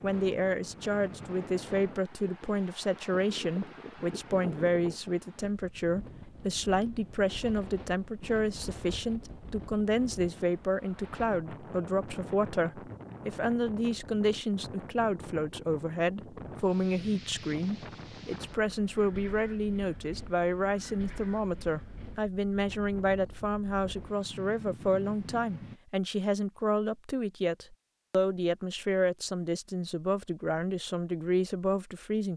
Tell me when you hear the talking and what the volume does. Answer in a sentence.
You can hear the talking from 0.0 to 32.3 s, at a steady volume.